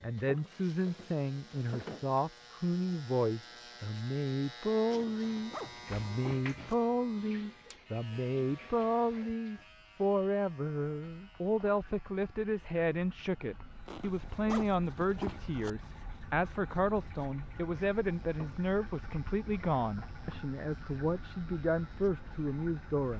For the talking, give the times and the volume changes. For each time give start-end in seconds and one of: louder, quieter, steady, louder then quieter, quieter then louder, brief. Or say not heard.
0.0-23.1 steady.